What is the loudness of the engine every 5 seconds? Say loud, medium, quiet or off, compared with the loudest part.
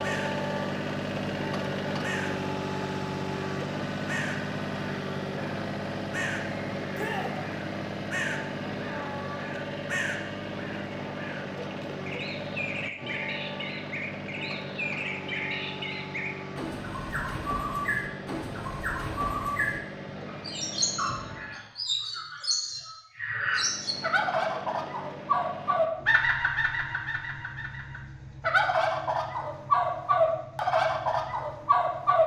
loud, loud, medium, medium, medium, quiet, quiet.